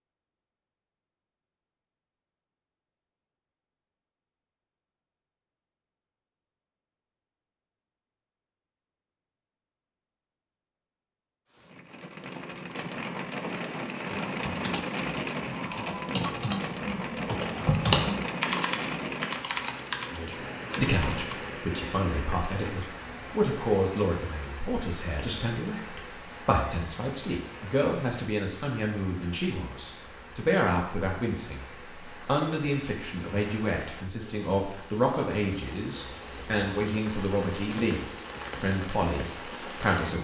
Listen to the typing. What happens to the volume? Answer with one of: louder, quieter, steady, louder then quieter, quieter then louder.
louder then quieter.